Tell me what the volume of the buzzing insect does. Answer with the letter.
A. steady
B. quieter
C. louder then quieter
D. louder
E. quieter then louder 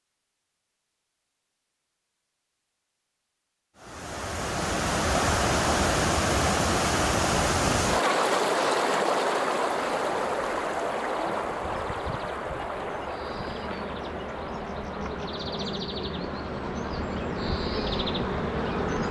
D.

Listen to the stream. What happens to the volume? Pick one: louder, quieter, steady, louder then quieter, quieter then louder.
quieter.